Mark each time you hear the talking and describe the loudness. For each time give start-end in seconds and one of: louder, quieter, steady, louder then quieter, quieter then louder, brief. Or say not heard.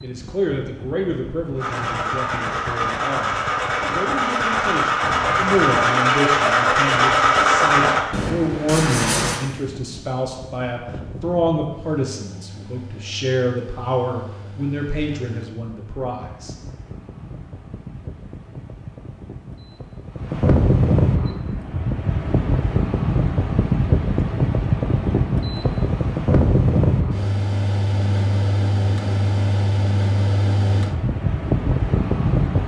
0.0-16.6 steady.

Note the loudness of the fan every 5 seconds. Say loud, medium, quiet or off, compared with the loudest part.
quiet, quiet, quiet, quiet, loud, loud, loud.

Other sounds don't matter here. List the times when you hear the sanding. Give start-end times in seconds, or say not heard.
1.6-9.4.